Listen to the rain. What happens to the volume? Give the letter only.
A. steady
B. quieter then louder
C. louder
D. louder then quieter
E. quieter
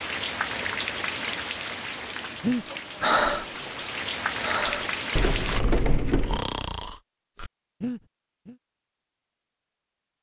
B.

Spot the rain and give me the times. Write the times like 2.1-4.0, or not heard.
0.0-5.6.